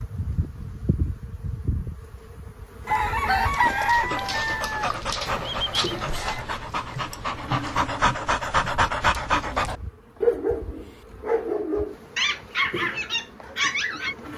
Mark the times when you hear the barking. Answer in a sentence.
The barking can be heard from 2.9 to 14.2 s.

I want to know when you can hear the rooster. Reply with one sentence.
You can hear the rooster from 2.9 to 6.5 s.